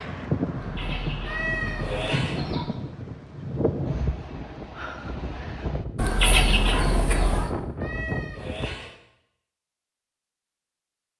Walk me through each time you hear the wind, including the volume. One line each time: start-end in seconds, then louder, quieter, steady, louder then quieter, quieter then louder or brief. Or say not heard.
0.0-8.8 steady.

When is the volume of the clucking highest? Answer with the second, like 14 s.
6 s.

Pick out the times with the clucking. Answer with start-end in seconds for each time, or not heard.
0.6-2.6, 6.0-7.5.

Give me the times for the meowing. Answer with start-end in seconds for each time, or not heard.
1.2-2.5, 7.8-9.0.